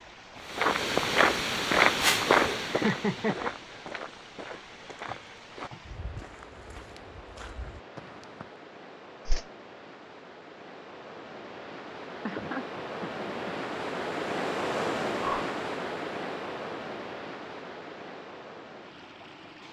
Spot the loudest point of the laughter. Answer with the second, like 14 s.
3 s.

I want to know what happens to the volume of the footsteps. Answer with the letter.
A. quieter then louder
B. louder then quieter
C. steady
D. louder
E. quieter
E.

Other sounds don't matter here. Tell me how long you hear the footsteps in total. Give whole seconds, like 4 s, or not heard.
8 s.